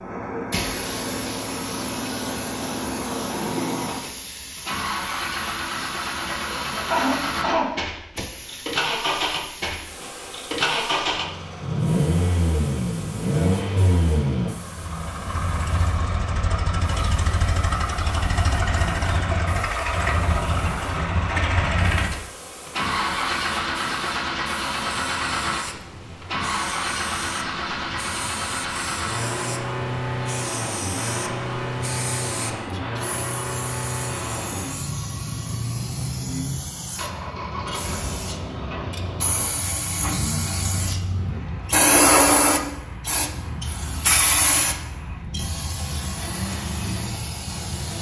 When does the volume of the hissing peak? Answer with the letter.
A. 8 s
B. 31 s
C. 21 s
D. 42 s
D.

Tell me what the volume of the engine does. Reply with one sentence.
The volume of the engine goes down.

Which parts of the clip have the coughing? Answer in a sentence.
You can hear the coughing from 6.2 to 7.8 s.